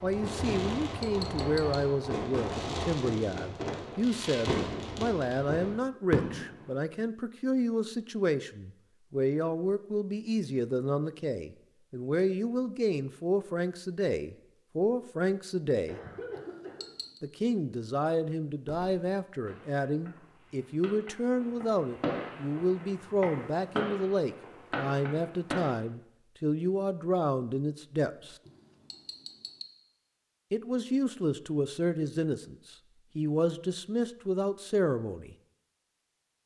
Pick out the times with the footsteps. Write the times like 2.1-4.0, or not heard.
not heard.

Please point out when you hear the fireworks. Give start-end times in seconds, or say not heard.
0.0-6.7, 18.6-25.8.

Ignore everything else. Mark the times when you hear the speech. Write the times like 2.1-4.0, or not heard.
0.0-16.0, 17.2-28.4, 30.5-35.4.